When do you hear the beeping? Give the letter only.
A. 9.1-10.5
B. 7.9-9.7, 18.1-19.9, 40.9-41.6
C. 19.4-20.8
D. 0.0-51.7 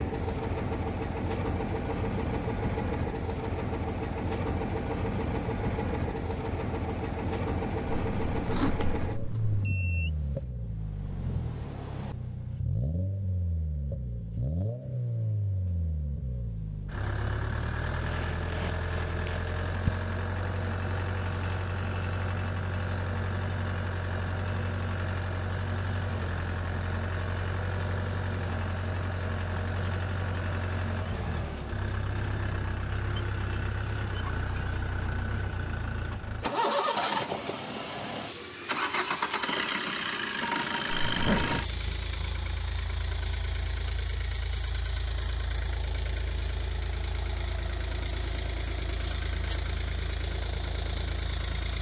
A.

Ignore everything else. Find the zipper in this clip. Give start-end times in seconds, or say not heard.
7.9-9.7, 18.1-19.9, 40.9-41.6.